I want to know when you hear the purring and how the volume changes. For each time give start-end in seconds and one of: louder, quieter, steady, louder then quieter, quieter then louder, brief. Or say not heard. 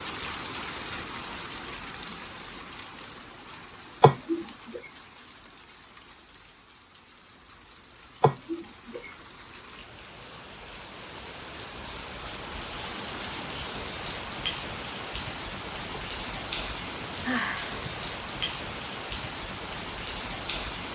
not heard.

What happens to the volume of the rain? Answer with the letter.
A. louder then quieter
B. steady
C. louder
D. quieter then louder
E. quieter
D.